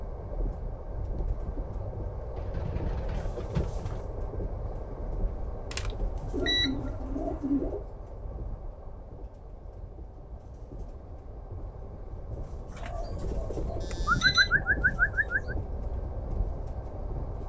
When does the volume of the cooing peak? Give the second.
14 s.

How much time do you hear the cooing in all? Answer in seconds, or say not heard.
6 s.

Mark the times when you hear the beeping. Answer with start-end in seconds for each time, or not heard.
5.7-6.8, 13.8-14.5.